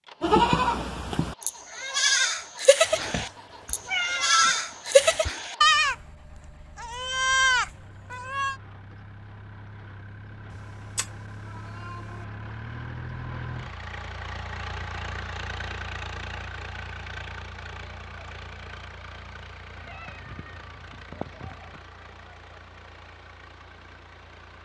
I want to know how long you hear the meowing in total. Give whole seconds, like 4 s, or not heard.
6 s.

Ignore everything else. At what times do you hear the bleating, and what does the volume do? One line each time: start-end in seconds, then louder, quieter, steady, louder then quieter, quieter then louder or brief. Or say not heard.
0.2-6.0 louder
6.8-8.6 brief.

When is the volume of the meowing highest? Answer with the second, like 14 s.
4 s.